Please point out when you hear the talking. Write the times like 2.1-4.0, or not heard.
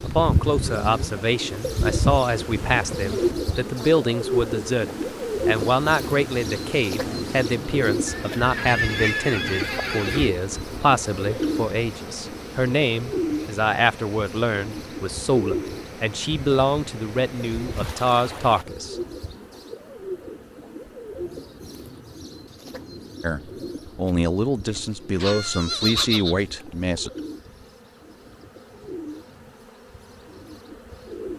0.0-18.9, 23.2-27.1.